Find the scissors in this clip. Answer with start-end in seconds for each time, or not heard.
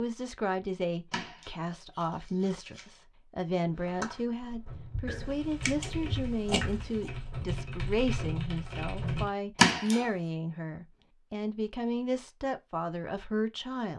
1.1-3.0, 5.0-7.1, 9.6-10.1.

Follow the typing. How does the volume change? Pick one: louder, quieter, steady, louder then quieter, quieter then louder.
louder.